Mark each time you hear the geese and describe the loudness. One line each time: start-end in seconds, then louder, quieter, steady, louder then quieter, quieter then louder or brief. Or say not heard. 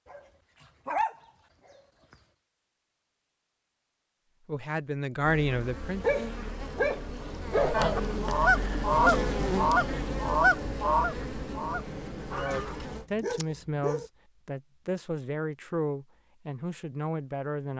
7.5-12.8 quieter.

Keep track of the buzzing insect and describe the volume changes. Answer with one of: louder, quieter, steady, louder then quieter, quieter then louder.
louder then quieter.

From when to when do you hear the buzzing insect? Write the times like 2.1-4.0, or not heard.
5.2-13.1.